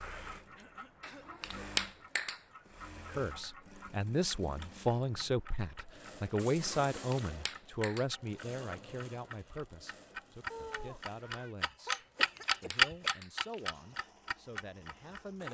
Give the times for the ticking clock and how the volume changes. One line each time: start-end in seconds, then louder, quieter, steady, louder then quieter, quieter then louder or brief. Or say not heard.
0.0-15.4 louder.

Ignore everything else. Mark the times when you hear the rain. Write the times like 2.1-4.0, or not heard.
not heard.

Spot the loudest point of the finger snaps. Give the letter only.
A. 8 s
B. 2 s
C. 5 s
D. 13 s
B.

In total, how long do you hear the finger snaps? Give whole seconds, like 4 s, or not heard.
4 s.